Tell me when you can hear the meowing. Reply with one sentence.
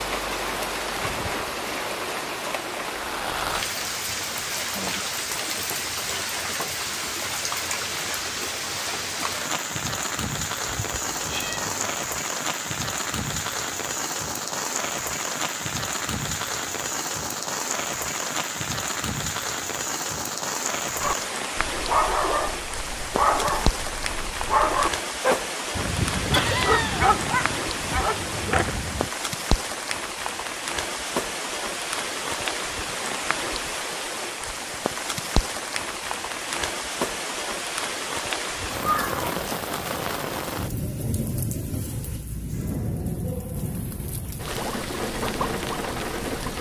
The meowing can be heard from 10.7 to 11.9 s, from 25.8 to 27.2 s and from 38.8 to 39.2 s.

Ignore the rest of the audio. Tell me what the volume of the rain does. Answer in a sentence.
The volume of the rain stays about the same.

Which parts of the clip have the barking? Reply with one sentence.
You can hear the barking from 21.0 to 29.1 s.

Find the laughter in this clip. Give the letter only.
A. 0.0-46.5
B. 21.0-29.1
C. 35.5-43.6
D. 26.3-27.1
D.